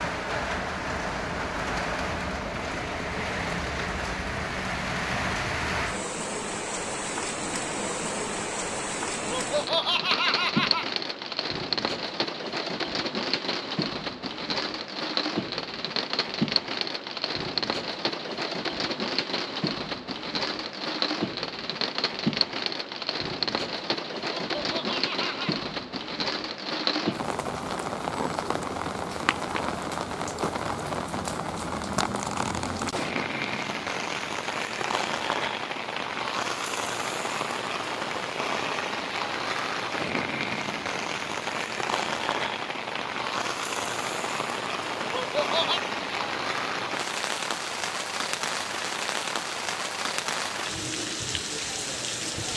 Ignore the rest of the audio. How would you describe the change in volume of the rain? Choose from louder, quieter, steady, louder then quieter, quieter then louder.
steady.